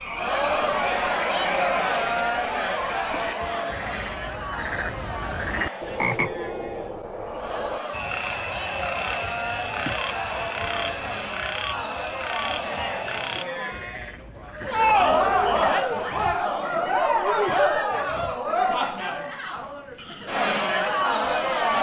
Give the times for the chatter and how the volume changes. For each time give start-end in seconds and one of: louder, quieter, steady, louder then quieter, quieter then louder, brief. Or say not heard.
0.0-21.7 quieter then louder.